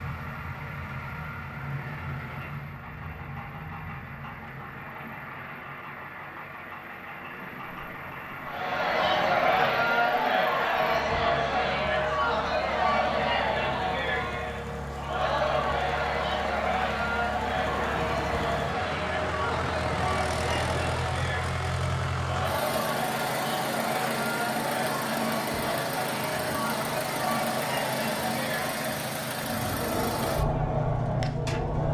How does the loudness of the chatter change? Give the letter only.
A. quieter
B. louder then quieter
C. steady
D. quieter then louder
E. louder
A.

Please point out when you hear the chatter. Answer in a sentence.
The chatter can be heard from 8.4 to 31.9 s.